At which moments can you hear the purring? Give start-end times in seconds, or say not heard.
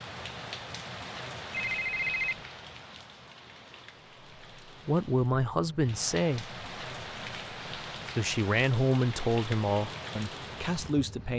not heard.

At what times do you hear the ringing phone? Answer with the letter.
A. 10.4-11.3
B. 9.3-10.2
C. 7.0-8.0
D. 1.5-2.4
D.